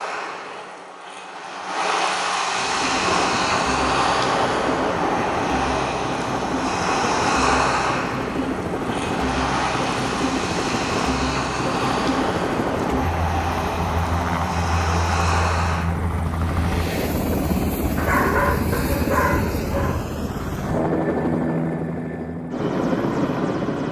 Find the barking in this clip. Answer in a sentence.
You can hear the barking from 17.9 to 20.0 s.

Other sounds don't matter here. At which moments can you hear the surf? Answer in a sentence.
You can hear the surf from 0.0 to 17.1 s.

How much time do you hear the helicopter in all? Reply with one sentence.
The helicopter can be heard for 21 seconds in total.